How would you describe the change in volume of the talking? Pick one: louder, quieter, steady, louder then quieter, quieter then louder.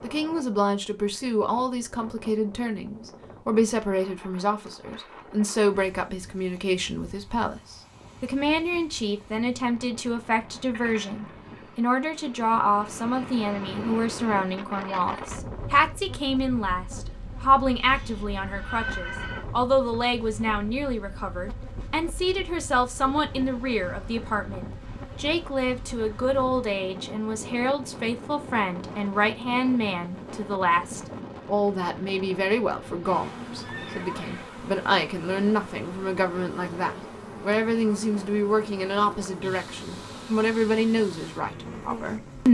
steady.